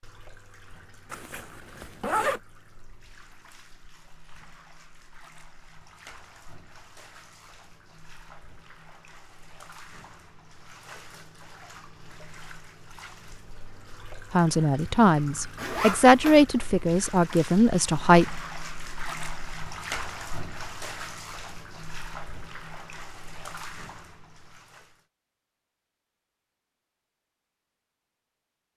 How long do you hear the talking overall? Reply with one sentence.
You can hear the talking for 4 seconds altogether.